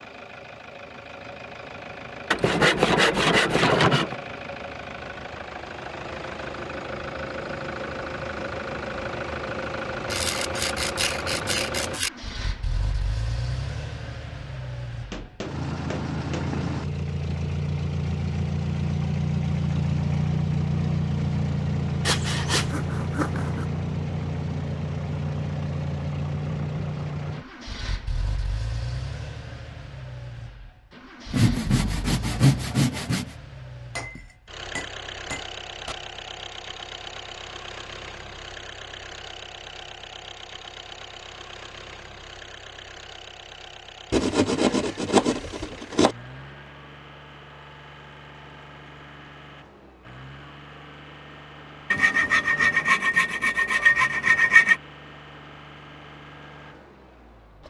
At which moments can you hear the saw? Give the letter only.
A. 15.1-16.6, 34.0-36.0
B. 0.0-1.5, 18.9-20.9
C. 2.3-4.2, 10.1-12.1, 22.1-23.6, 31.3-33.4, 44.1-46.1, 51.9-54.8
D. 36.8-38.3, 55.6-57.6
C.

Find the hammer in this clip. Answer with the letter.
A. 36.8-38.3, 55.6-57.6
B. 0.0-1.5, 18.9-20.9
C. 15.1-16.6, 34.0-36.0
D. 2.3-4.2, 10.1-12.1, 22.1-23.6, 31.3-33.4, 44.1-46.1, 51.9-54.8
C.